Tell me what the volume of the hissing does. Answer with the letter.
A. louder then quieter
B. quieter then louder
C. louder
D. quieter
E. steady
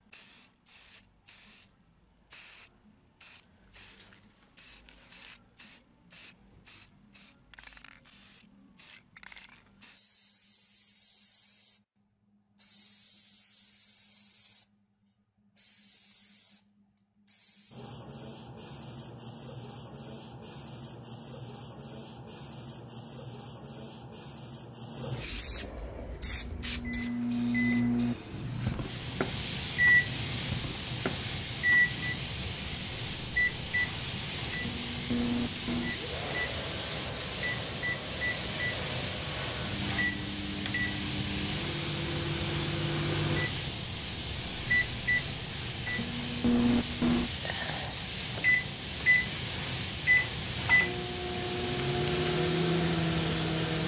C.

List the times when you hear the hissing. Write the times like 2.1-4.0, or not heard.
0.0-53.8.